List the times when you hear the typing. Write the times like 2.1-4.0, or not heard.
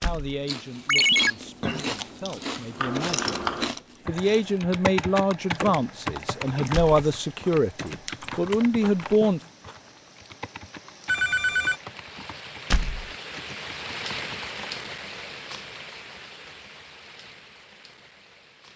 2.8-14.8.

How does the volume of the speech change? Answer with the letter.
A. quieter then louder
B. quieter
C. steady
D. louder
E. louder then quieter
D.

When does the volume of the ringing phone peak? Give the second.
1 s.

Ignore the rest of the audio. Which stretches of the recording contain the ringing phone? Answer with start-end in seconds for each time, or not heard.
0.8-1.3, 11.1-11.8.